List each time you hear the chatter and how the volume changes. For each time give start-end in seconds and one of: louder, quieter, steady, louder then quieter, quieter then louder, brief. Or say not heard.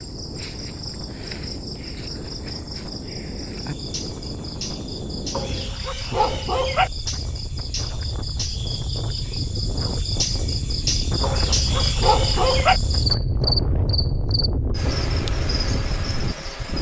not heard.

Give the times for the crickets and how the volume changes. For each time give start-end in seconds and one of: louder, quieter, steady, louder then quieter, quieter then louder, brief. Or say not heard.
0.0-16.7 louder.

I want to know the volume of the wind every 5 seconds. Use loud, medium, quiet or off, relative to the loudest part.
medium, medium, loud, loud.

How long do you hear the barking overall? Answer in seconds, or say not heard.
3 s.